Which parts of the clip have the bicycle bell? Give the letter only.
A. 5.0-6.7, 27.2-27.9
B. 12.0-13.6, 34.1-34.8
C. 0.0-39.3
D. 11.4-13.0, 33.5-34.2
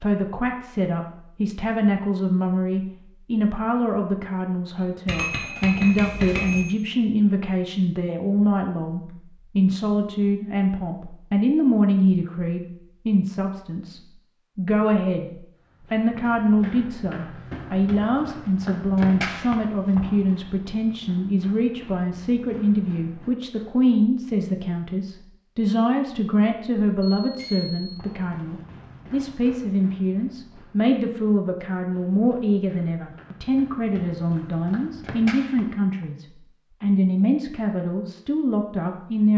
A.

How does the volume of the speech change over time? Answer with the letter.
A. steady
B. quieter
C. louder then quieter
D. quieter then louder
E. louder
A.